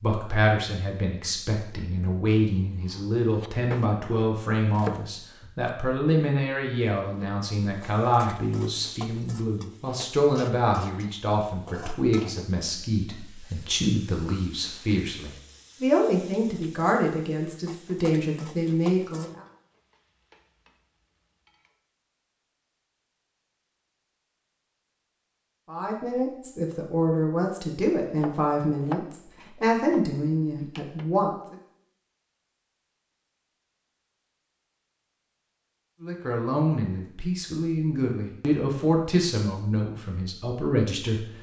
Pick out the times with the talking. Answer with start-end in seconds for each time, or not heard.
0.0-19.4, 25.6-31.6, 36.0-41.2.